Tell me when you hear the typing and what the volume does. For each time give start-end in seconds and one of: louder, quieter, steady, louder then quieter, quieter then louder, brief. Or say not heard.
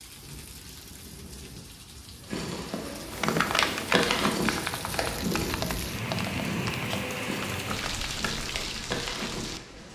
3.1-8.6 quieter.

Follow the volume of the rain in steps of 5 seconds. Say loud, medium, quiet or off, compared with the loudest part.
medium, loud.